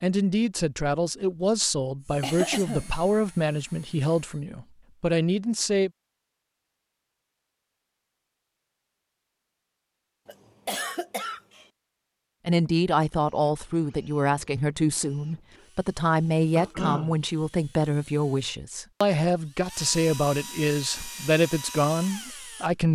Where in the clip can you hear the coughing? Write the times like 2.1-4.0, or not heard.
2.2-3.0, 10.2-11.7, 16.6-17.1.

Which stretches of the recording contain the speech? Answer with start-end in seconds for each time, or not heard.
0.0-5.9, 12.4-22.9.